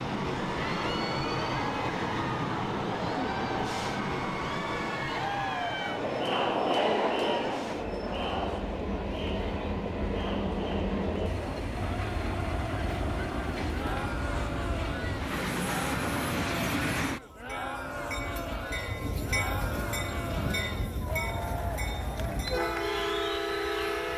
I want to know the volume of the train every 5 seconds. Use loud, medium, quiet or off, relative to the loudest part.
loud, medium, loud, loud, loud.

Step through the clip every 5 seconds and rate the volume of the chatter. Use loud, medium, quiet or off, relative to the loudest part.
medium, loud, medium, medium, medium.